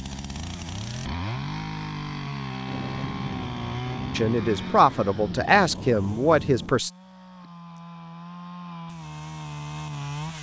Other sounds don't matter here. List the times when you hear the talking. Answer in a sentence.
You can hear the talking from 4.2 to 6.9 s.